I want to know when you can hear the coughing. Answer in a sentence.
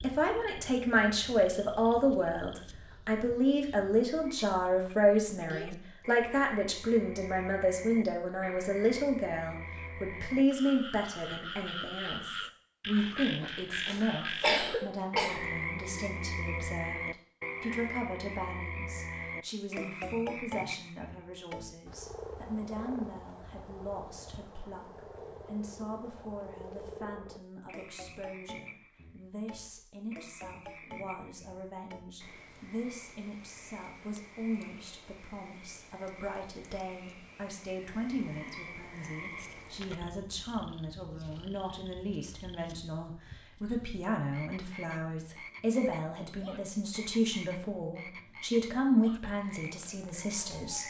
The coughing can be heard from 13.8 to 15.3 s.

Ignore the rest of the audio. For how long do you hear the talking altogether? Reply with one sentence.
The talking can be heard for 51 seconds in total.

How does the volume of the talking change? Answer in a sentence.
The loudness of the talking goes down, then up.